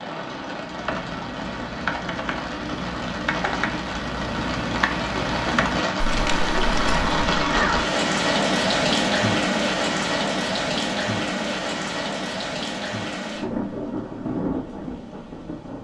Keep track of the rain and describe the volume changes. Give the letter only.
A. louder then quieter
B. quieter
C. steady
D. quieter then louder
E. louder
A.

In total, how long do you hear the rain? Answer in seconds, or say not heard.
16 s.